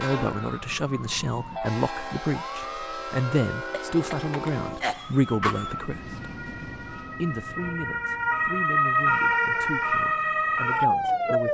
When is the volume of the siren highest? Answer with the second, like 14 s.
9 s.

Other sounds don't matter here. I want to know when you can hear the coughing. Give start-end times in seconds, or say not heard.
3.7-5.8.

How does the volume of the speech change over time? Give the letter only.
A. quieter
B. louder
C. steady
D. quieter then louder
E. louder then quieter
A.